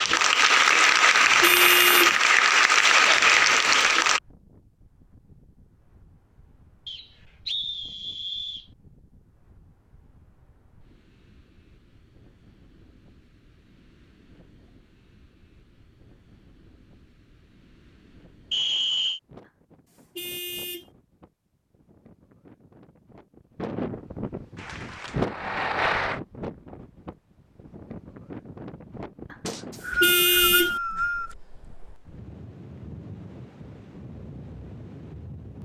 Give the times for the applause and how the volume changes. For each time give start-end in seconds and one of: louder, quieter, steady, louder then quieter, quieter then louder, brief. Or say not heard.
0.0-4.2 steady
24.6-26.2 brief.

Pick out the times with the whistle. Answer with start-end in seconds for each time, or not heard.
6.8-8.7, 18.5-19.2, 29.4-31.4.